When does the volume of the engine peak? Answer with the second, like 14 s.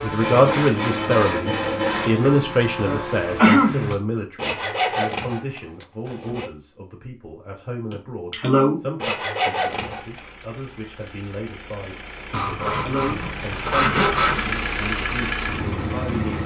15 s.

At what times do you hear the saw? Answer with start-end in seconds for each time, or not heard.
0.1-2.1, 4.3-6.5, 9.0-10.4, 12.3-14.4.